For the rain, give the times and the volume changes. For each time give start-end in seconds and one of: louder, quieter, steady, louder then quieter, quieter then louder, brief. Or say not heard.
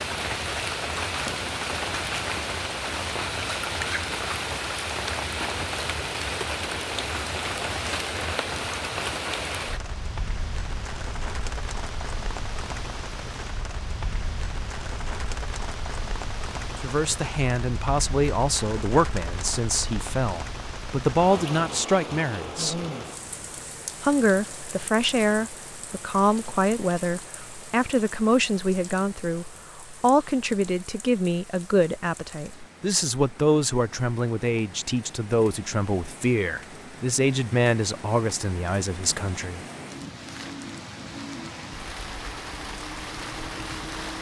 0.0-44.1 quieter then louder.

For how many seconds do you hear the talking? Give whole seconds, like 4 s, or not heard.
22 s.